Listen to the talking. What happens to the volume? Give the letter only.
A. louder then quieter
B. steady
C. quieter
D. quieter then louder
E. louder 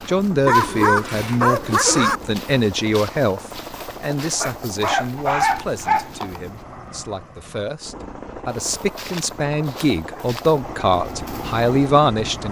D.